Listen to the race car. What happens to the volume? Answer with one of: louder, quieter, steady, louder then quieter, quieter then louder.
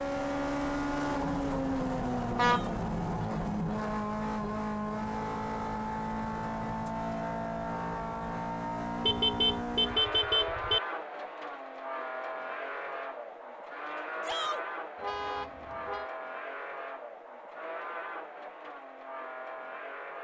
quieter.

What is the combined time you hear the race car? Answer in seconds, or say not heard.
20 s.